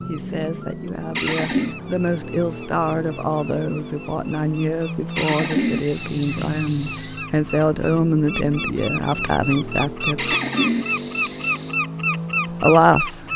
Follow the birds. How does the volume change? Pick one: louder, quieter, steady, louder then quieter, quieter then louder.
louder.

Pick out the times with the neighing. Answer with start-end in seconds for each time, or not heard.
1.1-1.8, 5.2-7.2, 10.2-11.8.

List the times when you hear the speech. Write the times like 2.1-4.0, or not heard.
0.1-10.3, 12.6-13.2.